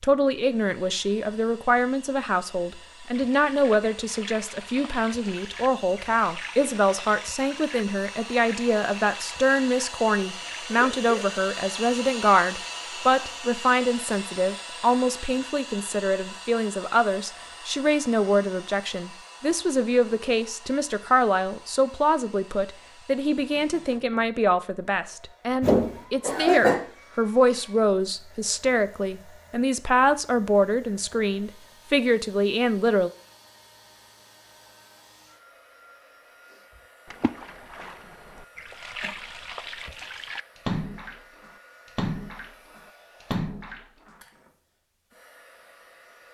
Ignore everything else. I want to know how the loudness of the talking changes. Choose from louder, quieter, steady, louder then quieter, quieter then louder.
steady.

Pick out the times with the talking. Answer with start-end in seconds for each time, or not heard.
0.0-33.1.